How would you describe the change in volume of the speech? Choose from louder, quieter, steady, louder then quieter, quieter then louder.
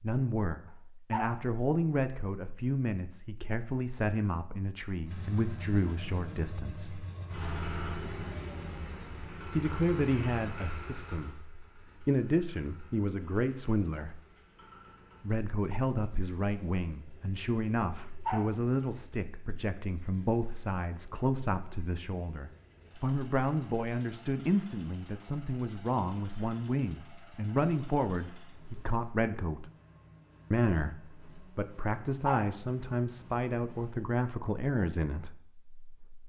steady.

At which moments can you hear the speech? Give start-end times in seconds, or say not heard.
0.0-7.0, 9.5-14.2, 15.2-29.6, 30.5-36.2.